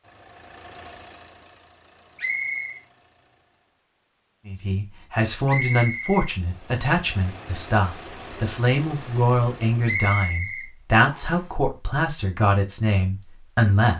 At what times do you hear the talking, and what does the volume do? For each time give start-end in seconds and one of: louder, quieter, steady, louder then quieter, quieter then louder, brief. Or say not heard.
4.5-13.9 steady.